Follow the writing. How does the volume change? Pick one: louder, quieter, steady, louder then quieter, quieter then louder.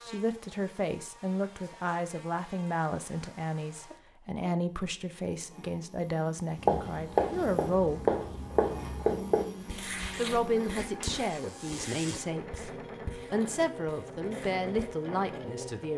quieter.